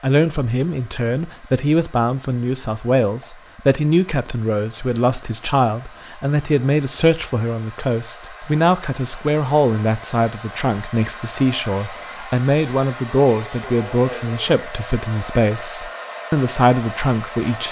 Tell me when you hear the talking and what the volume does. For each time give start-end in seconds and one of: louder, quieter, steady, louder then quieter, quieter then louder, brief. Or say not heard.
0.0-17.6 steady.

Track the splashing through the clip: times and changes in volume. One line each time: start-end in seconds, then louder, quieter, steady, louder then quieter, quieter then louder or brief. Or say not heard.
not heard.